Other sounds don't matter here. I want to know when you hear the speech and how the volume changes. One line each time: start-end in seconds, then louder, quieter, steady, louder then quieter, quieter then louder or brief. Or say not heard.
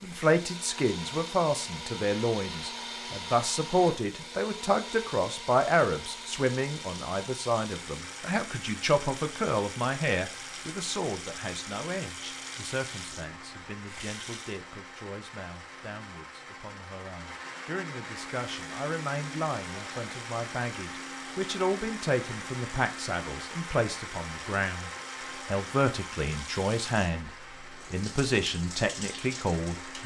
0.0-27.3 quieter then louder
27.9-30.0 brief.